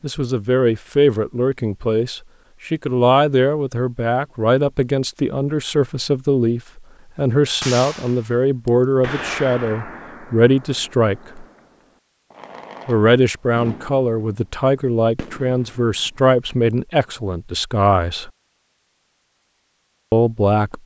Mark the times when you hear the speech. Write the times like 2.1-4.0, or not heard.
0.0-11.4, 12.8-18.3, 20.1-20.8.